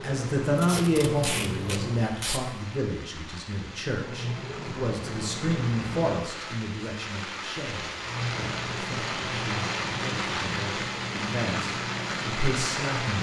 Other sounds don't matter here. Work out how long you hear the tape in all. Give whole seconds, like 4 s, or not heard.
2 s.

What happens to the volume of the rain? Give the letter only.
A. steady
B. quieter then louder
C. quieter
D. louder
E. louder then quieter
D.